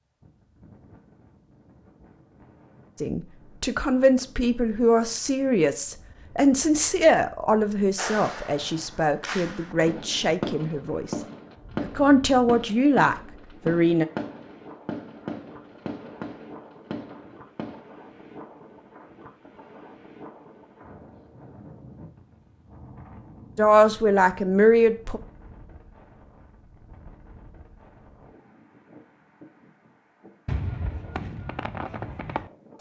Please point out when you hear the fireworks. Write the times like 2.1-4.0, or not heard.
8.0-17.9, 30.4-32.7.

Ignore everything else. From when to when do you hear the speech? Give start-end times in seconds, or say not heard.
3.0-11.2, 11.8-14.1, 23.6-25.2.